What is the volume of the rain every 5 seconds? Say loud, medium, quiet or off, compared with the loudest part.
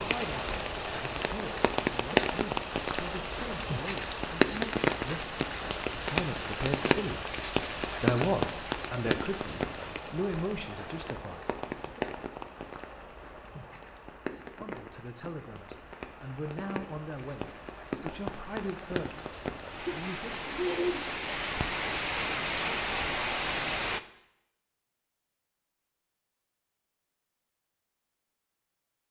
loud, loud, medium, medium, loud, off.